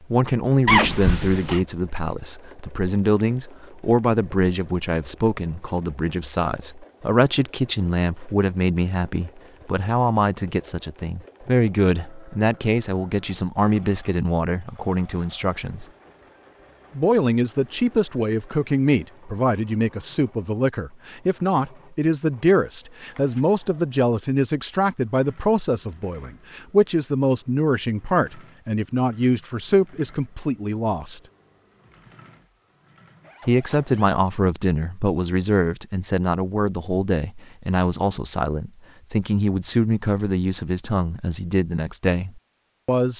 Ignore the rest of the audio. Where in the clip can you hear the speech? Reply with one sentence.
The speech can be heard from 0.1 to 15.8 s, from 16.9 to 31.2 s and from 33.5 to 43.1 s.